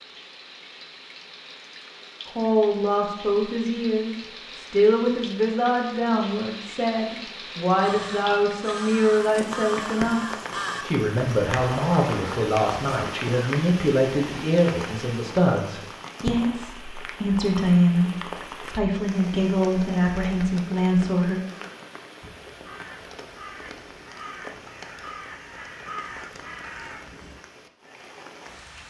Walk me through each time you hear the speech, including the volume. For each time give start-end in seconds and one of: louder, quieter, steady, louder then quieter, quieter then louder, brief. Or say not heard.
2.4-21.4 steady.